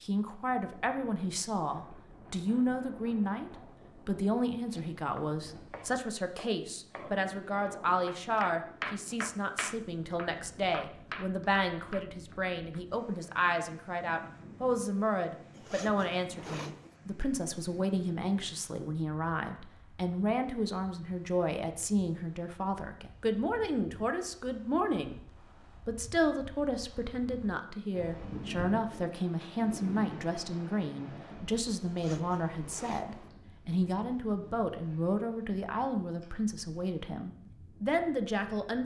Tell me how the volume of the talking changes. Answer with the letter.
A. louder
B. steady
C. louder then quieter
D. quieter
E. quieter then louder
B.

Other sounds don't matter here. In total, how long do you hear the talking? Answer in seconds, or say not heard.
38 s.